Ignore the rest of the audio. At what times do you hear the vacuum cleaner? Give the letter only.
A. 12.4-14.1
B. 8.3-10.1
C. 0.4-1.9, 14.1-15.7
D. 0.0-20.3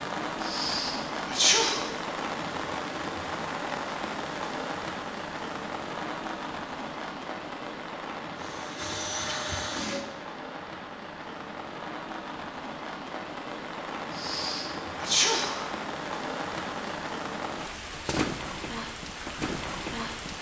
B.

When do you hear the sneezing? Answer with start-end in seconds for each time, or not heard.
0.4-1.9, 14.1-15.7.